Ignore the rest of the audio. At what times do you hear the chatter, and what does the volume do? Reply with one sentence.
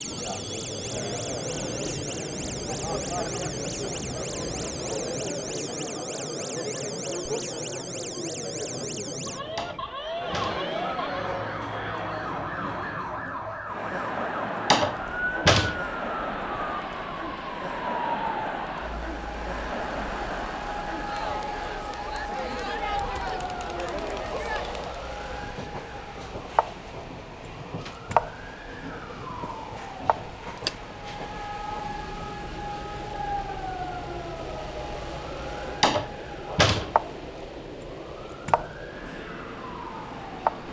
The chatter can be heard from 0.0 to 25.1 s, at a steady volume.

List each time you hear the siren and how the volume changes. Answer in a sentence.
You can hear the siren from 0.0 to 40.6 s, at a steady volume.